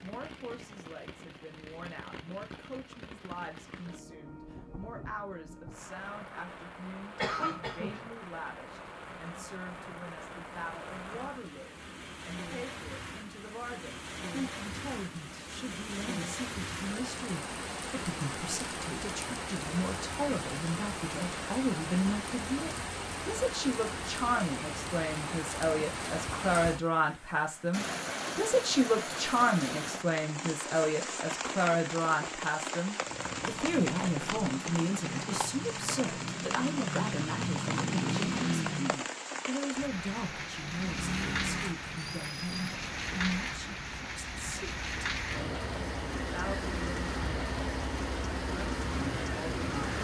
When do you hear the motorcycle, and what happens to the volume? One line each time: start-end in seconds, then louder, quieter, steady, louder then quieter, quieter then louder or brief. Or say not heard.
33.0-39.0 louder
40.8-49.9 quieter then louder.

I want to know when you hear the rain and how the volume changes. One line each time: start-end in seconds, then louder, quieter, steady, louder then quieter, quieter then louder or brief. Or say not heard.
0.0-49.9 louder.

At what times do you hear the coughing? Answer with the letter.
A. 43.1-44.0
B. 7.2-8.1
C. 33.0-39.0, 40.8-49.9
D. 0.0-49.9
B.